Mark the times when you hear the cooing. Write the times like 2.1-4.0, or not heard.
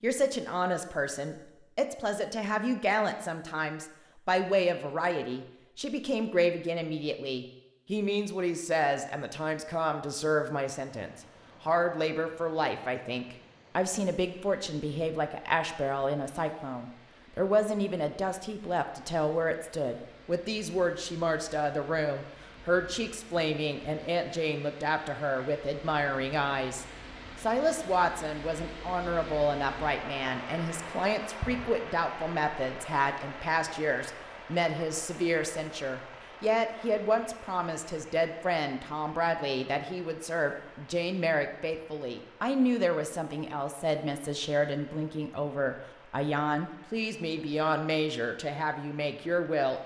not heard.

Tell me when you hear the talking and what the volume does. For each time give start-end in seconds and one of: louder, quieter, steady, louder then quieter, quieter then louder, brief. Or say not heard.
0.0-49.8 steady.